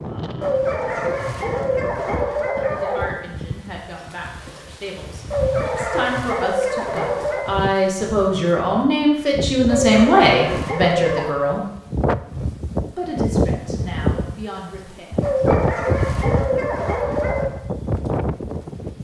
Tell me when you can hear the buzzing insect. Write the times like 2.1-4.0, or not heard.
not heard.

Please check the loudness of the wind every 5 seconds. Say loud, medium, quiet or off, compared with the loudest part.
medium, medium, loud, loud.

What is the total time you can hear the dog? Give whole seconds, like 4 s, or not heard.
9 s.